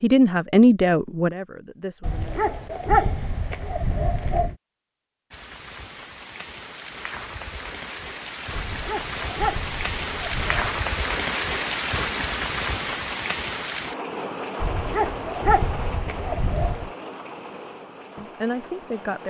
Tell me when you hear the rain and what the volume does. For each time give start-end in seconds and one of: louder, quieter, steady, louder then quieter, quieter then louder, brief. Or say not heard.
5.3-19.2 louder then quieter.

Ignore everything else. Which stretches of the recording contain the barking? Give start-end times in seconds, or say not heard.
2.0-4.5, 8.5-10.8, 14.6-16.9.